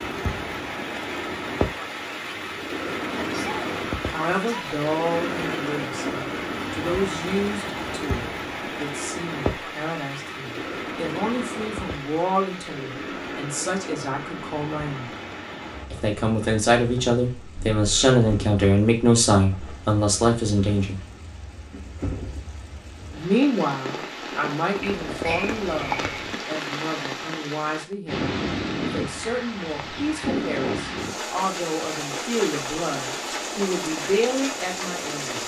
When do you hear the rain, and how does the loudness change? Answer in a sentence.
You can hear the rain from 0.0 to 35.4 s, getting quieter then louder.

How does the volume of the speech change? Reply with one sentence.
The volume of the speech goes up, then down.